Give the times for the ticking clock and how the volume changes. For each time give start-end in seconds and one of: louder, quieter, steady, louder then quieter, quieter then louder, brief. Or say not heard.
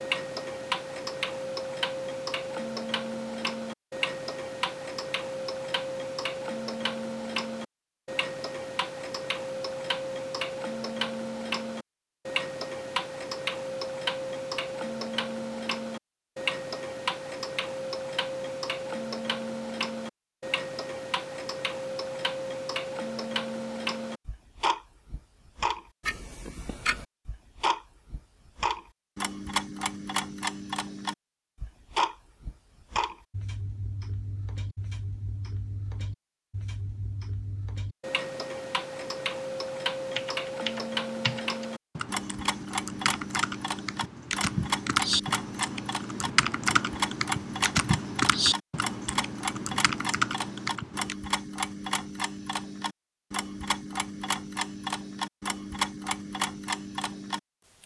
0.0-57.8 steady.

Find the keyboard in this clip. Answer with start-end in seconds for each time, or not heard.
40.1-51.1.